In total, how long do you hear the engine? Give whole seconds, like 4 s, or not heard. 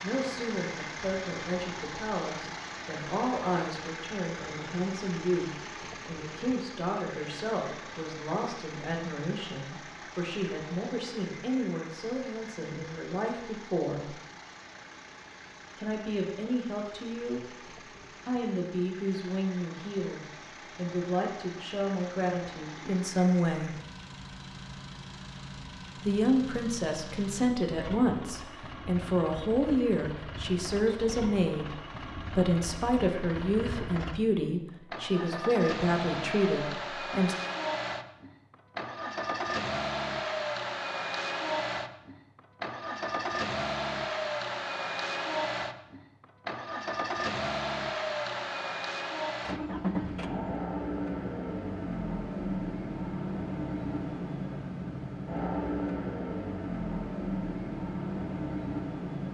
59 s.